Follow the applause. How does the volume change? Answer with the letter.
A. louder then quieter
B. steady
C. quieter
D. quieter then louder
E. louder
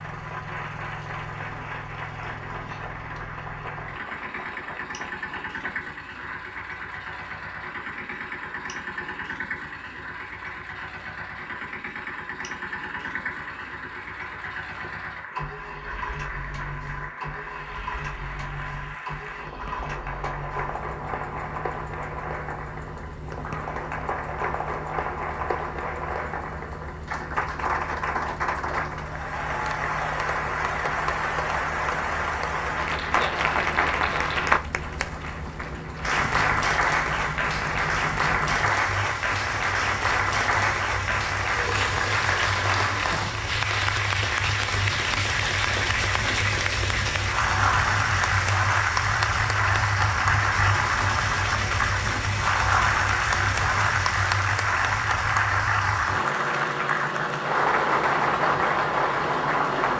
E.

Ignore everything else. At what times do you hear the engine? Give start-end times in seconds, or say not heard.
0.0-59.9.